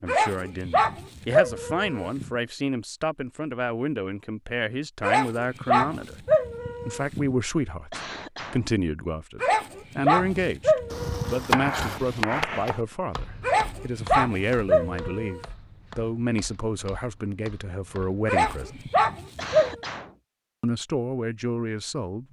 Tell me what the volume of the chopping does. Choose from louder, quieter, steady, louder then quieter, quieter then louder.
quieter.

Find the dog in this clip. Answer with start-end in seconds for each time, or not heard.
0.1-2.3, 5.0-7.3, 9.4-11.7, 13.4-15.4, 18.2-19.8.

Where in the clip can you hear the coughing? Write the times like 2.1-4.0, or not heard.
7.9-8.7, 19.4-20.1.